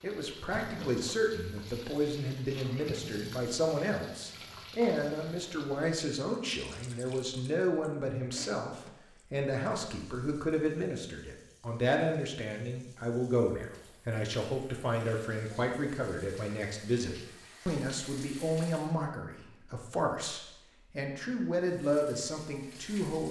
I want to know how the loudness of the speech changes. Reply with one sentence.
The loudness of the speech stays about the same.